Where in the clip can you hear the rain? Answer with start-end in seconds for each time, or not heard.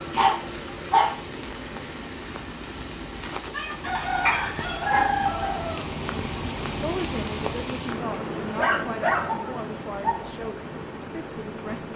0.0-11.9.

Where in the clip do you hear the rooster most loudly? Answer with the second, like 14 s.
5 s.